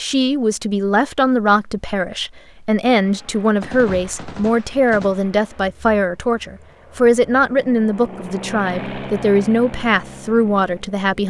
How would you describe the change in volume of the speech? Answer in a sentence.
The volume of the speech stays about the same.